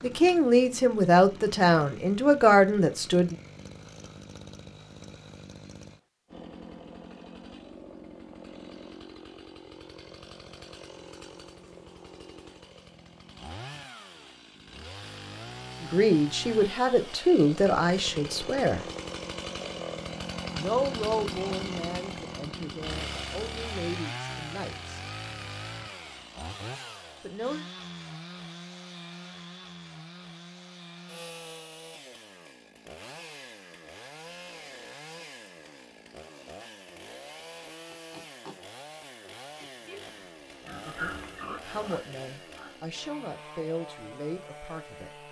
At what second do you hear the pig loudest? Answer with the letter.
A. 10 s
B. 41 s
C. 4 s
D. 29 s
B.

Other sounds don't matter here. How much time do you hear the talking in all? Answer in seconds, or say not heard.
16 s.